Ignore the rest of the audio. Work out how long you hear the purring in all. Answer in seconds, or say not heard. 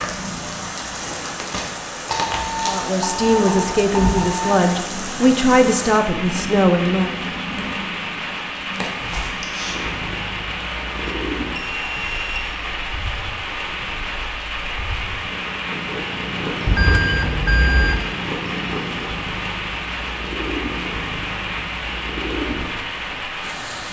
24 s.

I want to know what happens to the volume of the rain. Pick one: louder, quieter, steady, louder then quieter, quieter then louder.
steady.